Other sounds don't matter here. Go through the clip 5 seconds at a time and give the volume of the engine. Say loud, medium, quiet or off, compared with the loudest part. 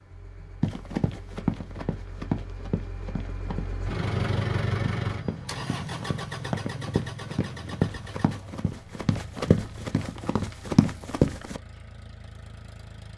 loud, loud, quiet.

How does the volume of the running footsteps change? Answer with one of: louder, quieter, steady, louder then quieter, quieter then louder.
quieter then louder.